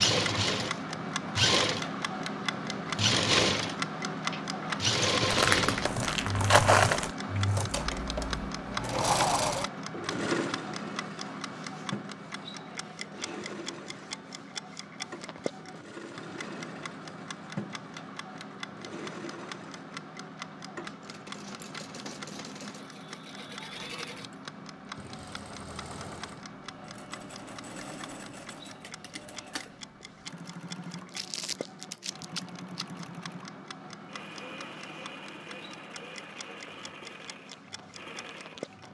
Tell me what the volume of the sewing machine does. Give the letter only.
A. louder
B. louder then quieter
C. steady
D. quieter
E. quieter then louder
D.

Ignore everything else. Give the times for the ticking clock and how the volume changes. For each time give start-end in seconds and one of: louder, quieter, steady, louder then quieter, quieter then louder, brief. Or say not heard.
0.0-38.8 quieter.